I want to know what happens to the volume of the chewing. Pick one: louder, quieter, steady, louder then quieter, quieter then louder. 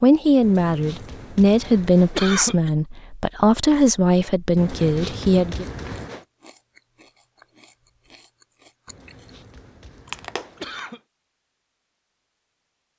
louder.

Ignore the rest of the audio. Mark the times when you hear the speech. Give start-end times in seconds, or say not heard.
0.0-5.7.